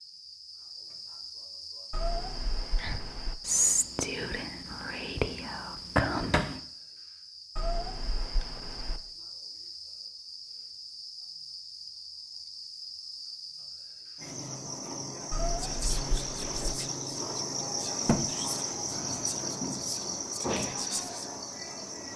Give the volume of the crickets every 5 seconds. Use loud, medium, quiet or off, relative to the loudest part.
medium, medium, medium, loud, loud.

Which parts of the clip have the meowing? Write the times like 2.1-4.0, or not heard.
1.9-3.4, 7.5-9.0, 15.3-16.8.